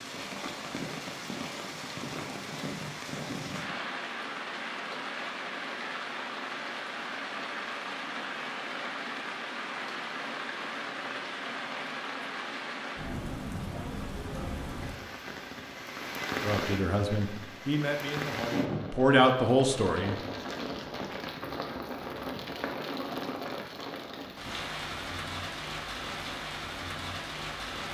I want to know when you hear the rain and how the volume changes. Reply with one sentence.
The rain can be heard from 0.0 to 27.8 s, at a steady volume.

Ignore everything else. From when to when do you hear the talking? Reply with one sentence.
You can hear the talking from 16.4 to 20.1 s.